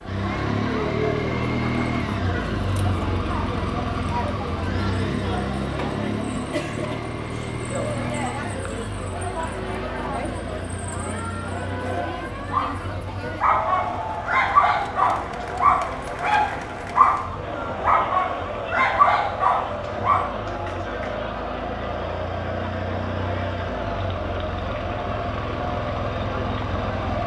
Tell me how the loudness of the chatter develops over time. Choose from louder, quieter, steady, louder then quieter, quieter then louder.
steady.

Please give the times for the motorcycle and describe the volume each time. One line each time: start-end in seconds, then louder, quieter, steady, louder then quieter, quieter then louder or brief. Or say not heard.
0.1-27.2 quieter then louder.